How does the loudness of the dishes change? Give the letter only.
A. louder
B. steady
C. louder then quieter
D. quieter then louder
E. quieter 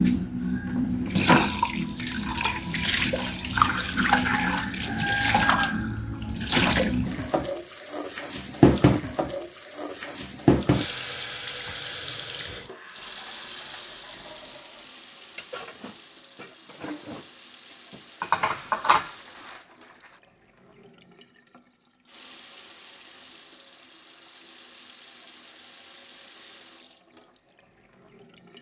A.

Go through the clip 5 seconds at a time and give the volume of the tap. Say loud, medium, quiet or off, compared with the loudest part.
loud, loud, medium, quiet, quiet, quiet.